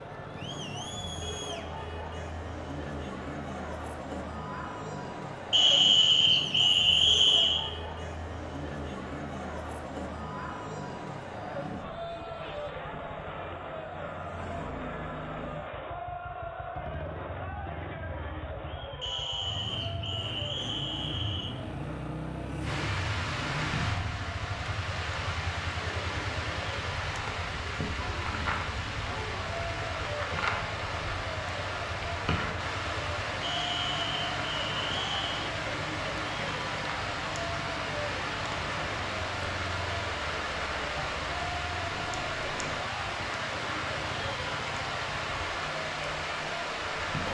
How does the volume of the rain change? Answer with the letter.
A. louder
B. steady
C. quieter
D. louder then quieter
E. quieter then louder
B.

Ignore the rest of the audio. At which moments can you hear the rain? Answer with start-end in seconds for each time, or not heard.
22.6-47.2.